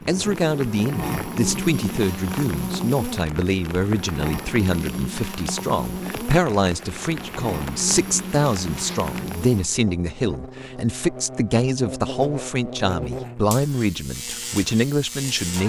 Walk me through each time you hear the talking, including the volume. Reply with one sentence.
You can hear the talking from 0.1 to 15.6 s, at a steady volume.